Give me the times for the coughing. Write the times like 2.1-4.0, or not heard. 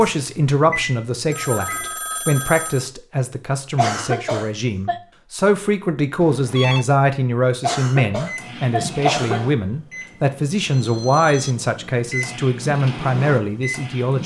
3.8-5.0, 7.6-9.4.